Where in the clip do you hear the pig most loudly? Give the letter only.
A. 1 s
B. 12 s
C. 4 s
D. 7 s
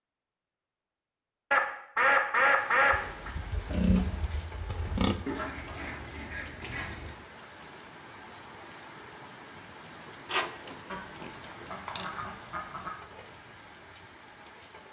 C.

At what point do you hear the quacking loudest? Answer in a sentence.
The volume of the quacking peaks at 2 seconds.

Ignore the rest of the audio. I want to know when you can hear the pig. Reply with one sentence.
You can hear the pig from 2.9 to 5.2 s and from 10.2 to 12.2 s.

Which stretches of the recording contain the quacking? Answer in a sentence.
You can hear the quacking from 1.5 to 3.3 s, from 5.2 to 7.2 s and from 10.9 to 12.9 s.